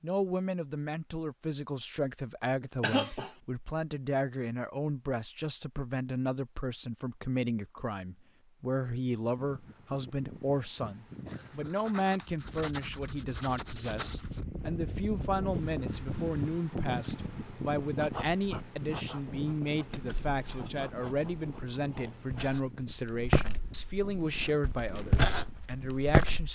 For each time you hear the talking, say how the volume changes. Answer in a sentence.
You can hear the talking from 0.0 to 26.5 s, at a steady volume.